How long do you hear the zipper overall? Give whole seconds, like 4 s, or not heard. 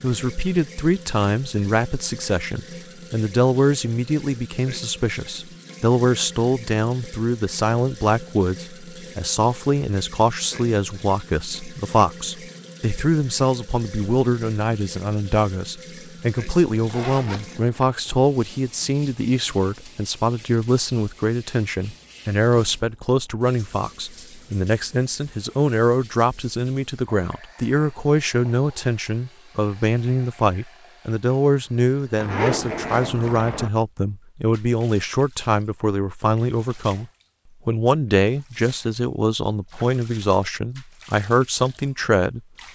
3 s.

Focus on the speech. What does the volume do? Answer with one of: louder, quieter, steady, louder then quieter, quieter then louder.
steady.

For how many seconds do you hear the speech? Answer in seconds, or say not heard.
42 s.